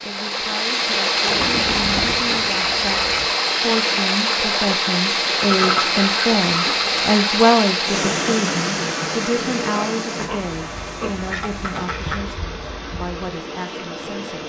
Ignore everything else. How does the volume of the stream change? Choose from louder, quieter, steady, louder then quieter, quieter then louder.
quieter.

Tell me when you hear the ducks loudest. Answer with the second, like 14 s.
6 s.